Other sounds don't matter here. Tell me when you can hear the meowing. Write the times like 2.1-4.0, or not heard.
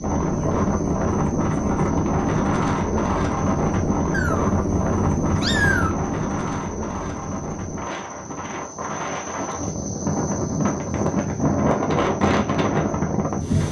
4.1-6.0.